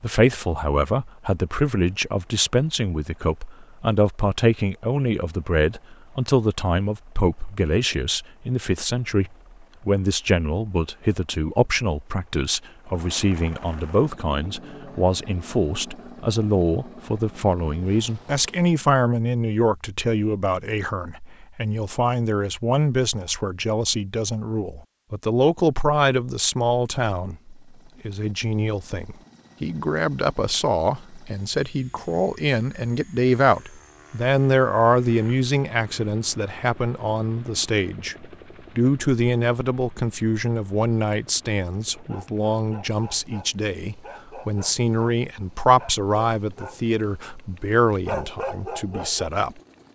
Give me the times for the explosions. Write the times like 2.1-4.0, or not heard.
not heard.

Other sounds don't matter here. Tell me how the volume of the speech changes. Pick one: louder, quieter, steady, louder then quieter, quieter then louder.
steady.